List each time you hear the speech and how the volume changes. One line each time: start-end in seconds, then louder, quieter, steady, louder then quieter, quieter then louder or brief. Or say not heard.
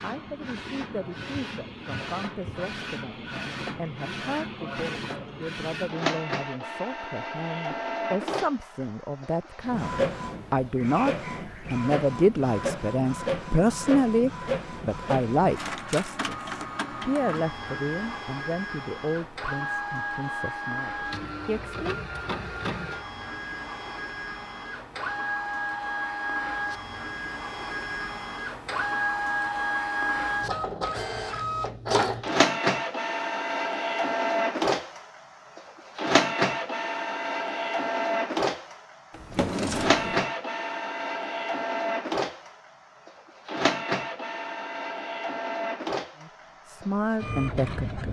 0.0-22.2 louder then quieter
46.1-48.0 brief.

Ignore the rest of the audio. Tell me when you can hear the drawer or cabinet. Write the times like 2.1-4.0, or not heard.
39.1-40.2.